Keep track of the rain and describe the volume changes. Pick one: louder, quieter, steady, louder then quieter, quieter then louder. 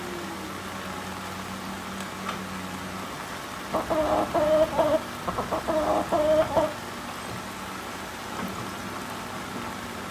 steady.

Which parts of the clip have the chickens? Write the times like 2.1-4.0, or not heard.
3.7-6.7.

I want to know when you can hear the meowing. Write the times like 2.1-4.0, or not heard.
not heard.